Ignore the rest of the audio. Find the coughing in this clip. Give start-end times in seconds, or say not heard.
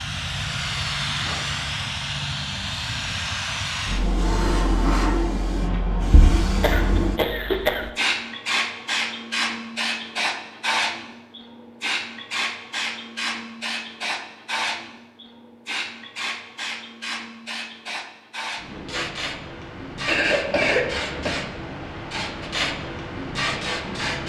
6.6-7.9, 20.1-21.4.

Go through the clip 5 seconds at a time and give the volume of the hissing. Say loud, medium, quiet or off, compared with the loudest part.
loud, loud, loud, medium, loud.